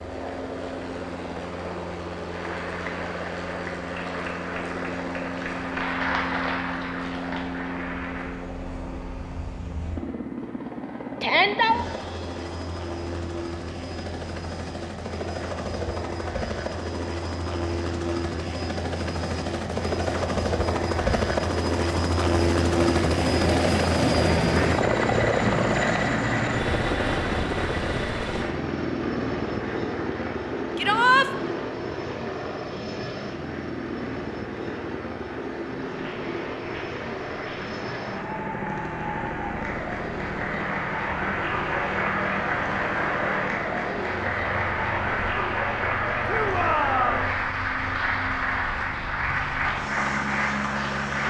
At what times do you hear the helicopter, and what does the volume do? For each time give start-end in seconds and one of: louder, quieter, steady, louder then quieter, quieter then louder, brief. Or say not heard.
0.0-51.2 louder then quieter.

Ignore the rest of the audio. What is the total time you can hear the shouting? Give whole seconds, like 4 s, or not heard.
2 s.